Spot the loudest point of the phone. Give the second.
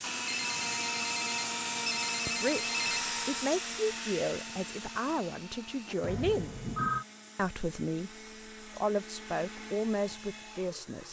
7 s.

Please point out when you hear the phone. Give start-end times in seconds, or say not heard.
0.2-3.0, 6.0-7.0.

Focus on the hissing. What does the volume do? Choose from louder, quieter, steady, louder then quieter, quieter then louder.
quieter.